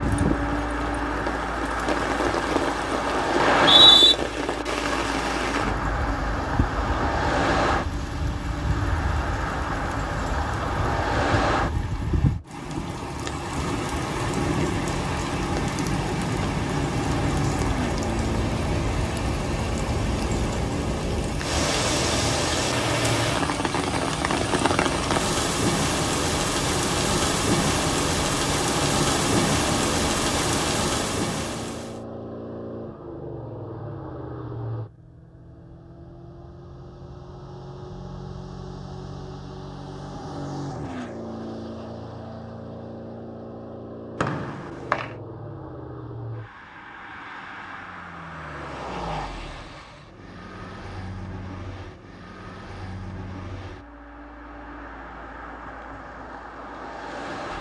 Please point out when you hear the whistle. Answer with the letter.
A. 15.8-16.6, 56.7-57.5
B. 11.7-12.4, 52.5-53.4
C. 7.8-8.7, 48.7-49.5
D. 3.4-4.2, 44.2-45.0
D.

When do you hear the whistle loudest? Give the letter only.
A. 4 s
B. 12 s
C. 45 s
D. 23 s
A.